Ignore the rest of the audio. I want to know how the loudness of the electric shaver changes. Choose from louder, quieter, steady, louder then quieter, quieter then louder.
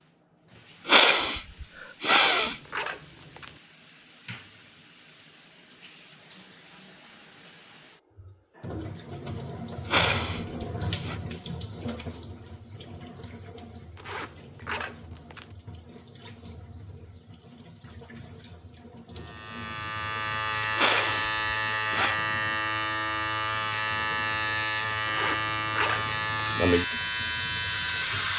steady.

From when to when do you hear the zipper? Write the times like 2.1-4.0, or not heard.
2.0-3.6, 13.9-15.6, 25.1-26.6.